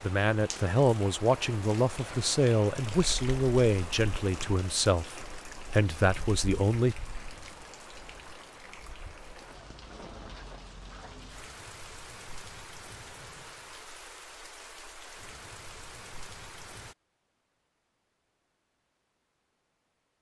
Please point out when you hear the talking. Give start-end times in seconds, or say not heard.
0.0-7.0.